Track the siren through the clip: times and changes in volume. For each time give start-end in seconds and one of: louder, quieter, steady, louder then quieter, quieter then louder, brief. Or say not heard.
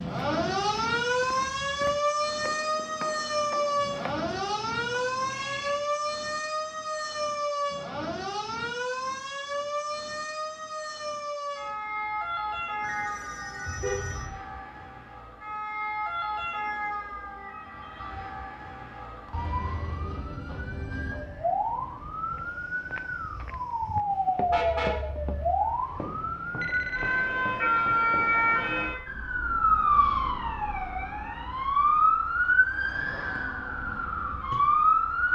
0.0-35.3 quieter then louder.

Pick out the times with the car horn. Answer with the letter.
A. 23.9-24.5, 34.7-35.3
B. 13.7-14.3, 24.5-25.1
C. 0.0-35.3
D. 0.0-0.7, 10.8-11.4
B.